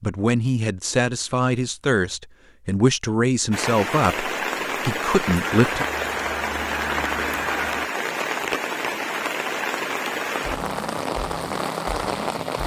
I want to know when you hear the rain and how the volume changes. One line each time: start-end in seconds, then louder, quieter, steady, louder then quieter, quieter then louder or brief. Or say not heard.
3.5-12.6 steady.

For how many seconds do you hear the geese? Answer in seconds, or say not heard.
2 s.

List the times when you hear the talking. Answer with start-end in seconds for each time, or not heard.
0.0-5.8.